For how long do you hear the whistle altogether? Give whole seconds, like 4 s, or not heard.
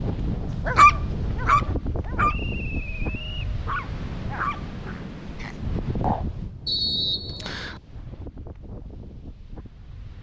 2 s.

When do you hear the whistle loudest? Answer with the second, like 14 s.
7 s.